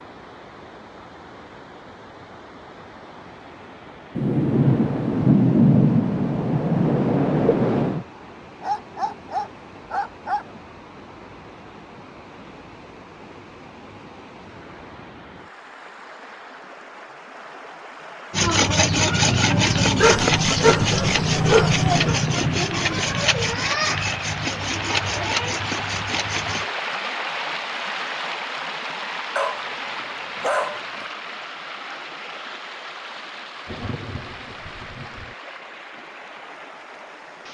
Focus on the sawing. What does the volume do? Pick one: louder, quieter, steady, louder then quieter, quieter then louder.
quieter.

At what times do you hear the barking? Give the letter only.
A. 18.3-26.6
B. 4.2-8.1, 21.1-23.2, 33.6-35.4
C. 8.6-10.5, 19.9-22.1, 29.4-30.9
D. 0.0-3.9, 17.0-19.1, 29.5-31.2
C.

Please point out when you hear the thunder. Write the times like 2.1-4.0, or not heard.
4.2-8.1, 21.1-23.2, 33.6-35.4.